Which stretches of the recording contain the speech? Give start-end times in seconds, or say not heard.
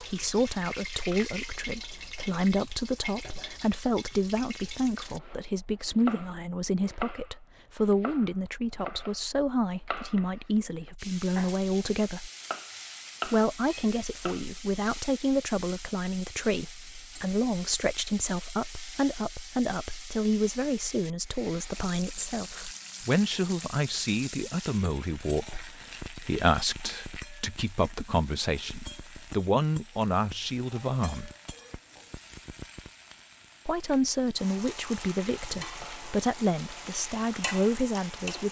0.0-12.3, 13.2-31.3, 33.6-38.4.